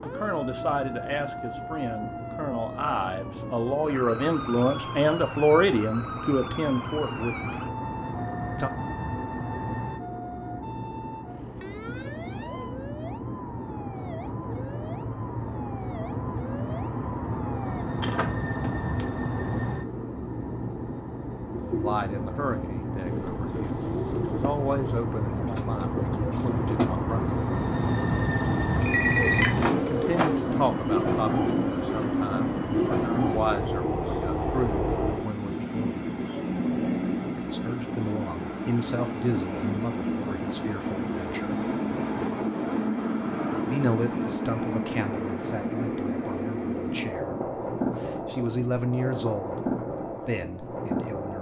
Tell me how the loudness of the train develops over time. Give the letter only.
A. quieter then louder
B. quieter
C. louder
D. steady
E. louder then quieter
C.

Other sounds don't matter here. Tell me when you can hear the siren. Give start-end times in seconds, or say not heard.
0.0-17.9.